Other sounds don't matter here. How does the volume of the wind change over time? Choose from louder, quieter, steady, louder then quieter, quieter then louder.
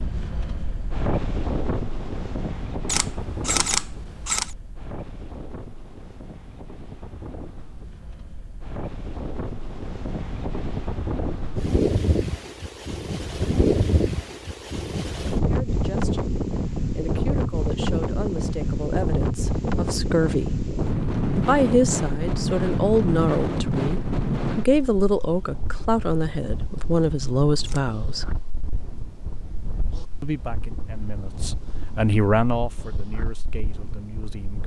louder then quieter.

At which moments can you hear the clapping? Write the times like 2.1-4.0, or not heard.
not heard.